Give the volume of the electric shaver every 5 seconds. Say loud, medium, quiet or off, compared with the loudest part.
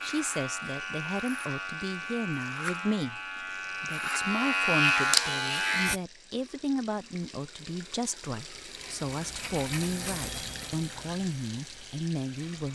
loud, loud, quiet.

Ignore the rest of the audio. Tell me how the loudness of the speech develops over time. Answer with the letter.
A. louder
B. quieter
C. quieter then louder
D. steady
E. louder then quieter
D.